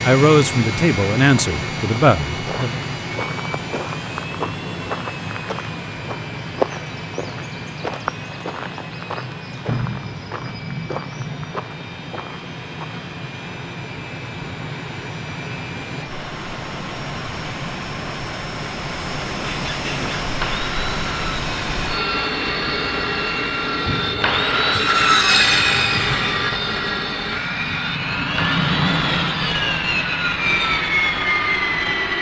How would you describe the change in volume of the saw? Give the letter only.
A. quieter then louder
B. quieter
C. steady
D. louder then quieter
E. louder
D.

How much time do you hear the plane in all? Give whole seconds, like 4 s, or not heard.
32 s.